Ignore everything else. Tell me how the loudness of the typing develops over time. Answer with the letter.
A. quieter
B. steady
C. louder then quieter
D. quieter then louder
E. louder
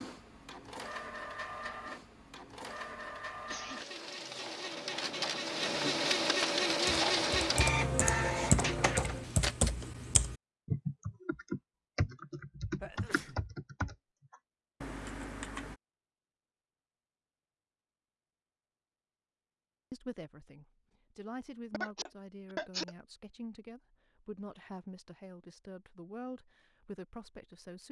A.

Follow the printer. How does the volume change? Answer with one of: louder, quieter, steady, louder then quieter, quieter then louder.
louder.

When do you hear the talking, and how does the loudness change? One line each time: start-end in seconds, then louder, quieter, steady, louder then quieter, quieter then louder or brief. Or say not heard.
19.9-27.8 steady.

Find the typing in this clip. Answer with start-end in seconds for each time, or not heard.
6.8-15.8.